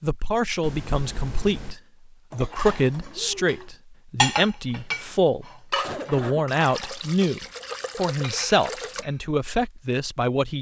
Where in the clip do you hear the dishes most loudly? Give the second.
4 s.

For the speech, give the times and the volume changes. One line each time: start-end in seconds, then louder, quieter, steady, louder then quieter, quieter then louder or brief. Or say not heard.
0.0-10.5 steady.